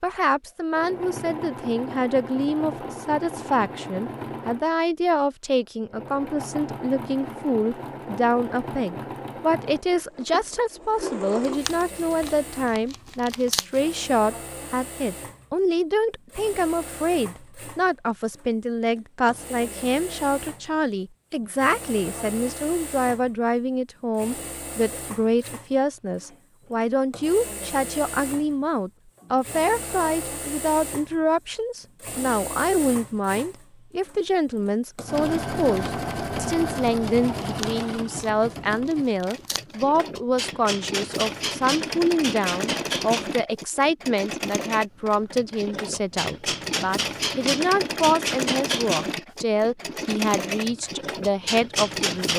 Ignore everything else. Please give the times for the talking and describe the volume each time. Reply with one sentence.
You can hear the talking from 0.0 to 52.3 s, at a steady volume.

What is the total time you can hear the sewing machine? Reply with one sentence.
The sewing machine can be heard for 52 seconds in total.